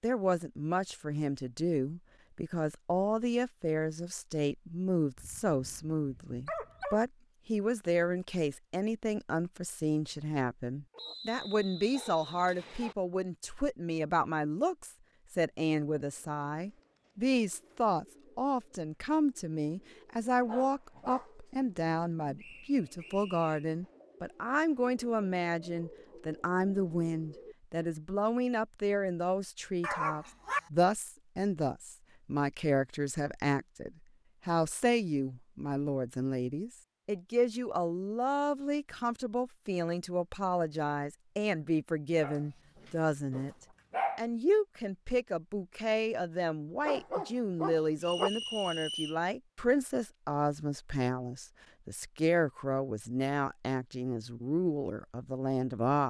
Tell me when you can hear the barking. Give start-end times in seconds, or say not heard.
5.2-7.0, 10.9-12.9, 20.4-22.4, 29.8-30.6, 42.2-44.2, 46.9-48.3.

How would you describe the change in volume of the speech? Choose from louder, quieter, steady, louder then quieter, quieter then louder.
steady.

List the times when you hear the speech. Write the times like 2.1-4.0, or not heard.
0.0-43.5, 44.1-56.0.